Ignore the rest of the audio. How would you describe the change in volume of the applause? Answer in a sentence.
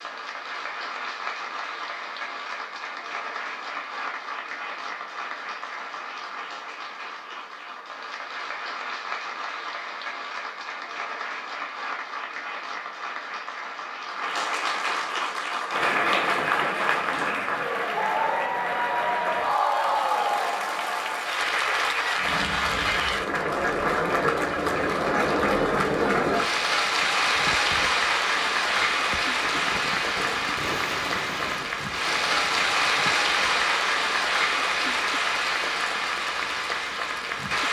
The loudness of the applause goes up.